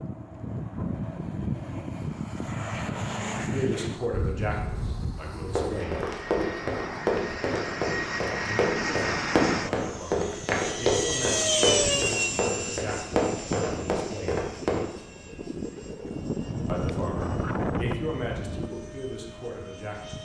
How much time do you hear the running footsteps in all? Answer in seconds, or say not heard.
9 s.